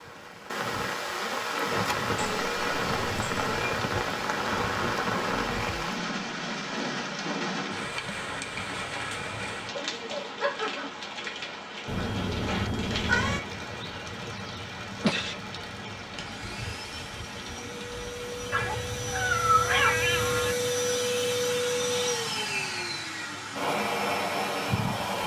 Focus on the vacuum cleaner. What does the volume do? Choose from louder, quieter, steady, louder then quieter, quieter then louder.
louder.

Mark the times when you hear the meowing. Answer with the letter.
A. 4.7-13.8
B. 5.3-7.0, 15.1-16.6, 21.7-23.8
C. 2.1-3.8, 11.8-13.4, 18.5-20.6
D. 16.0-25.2
C.